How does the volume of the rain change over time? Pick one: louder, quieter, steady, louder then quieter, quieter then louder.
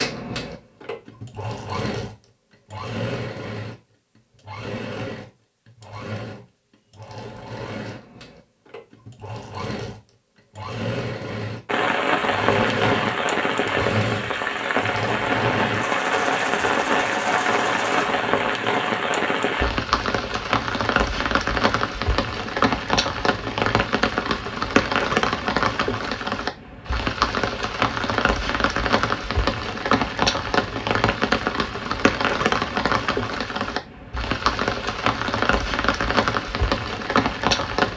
steady.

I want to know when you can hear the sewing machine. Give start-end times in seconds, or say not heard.
0.0-18.8.